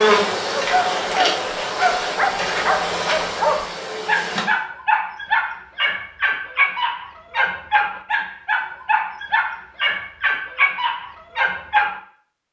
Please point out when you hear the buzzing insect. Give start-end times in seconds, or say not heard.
0.0-4.5.